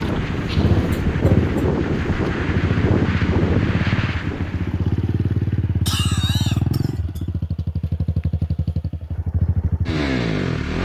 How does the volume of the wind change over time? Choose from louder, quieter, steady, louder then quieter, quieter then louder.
quieter.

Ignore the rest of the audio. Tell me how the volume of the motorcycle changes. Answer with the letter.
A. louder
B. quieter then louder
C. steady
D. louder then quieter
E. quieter
C.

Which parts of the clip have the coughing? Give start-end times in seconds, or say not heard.
0.9-1.4, 5.8-7.2.